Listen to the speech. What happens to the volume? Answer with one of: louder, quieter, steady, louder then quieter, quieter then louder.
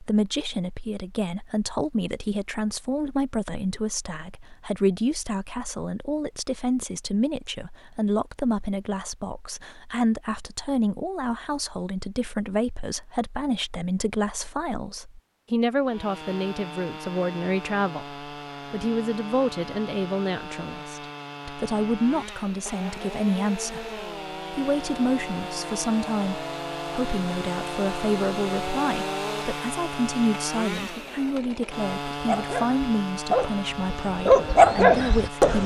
steady.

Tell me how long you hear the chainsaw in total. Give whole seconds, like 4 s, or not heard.
20 s.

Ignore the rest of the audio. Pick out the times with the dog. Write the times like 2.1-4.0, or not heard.
32.2-35.6.